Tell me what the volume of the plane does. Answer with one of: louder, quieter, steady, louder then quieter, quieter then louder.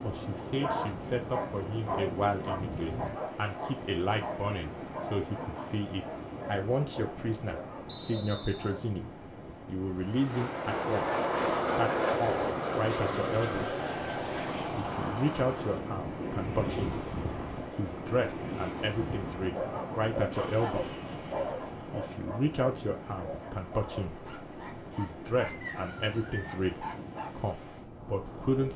quieter.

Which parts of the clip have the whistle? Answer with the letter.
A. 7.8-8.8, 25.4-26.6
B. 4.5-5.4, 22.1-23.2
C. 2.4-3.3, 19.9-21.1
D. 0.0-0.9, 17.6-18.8
A.